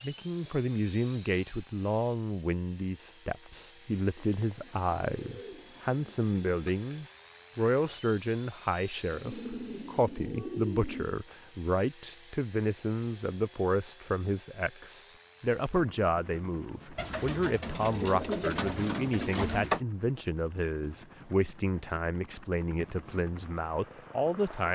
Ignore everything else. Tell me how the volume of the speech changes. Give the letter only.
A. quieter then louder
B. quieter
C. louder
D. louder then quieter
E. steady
E.